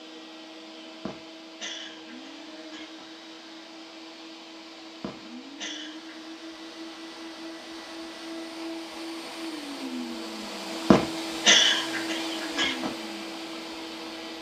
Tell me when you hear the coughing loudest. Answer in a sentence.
The loudest moment of the coughing is at 12 seconds.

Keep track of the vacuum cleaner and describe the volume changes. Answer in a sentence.
The volume of the vacuum cleaner goes up.